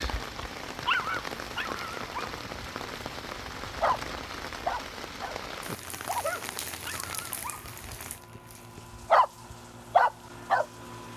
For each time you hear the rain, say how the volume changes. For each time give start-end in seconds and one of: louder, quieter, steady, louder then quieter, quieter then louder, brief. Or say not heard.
0.0-11.1 quieter.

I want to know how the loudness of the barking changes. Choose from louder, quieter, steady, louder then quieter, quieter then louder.
quieter then louder.